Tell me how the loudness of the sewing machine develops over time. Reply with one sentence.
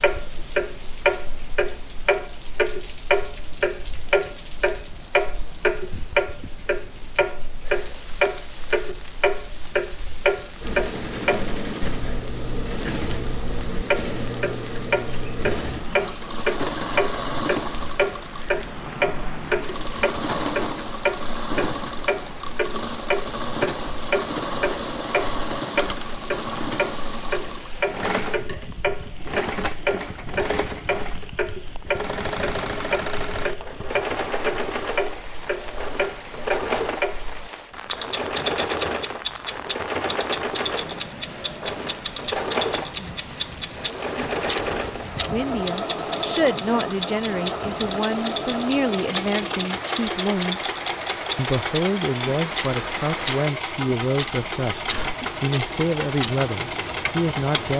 The loudness of the sewing machine stays about the same.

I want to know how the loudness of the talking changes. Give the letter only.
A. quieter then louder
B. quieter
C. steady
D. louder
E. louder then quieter
C.